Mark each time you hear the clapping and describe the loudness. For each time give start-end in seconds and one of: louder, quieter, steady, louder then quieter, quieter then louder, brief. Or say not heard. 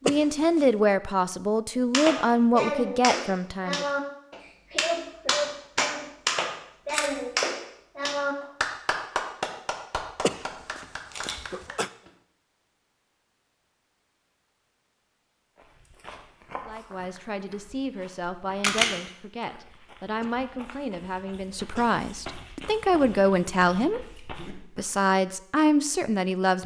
1.9-12.1 quieter.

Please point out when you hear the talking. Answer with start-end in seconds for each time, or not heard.
0.0-3.9, 16.6-26.6.